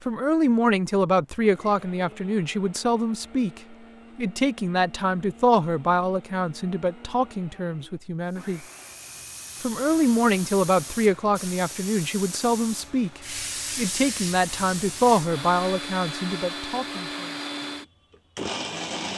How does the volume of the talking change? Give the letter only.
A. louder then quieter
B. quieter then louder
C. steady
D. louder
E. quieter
C.